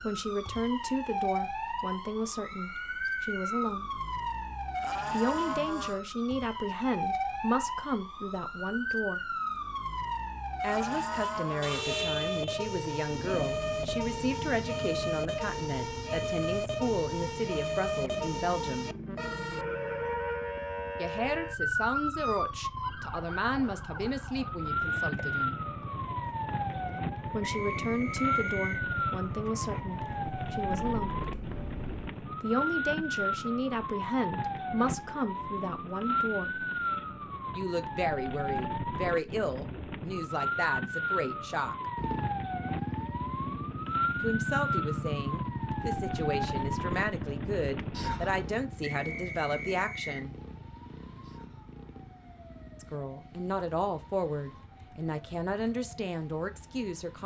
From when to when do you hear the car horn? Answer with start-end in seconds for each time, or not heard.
11.6-12.6.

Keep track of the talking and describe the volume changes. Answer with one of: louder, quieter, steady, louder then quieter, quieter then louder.
steady.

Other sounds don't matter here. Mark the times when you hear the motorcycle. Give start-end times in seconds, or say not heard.
13.1-32.1, 42.0-57.2.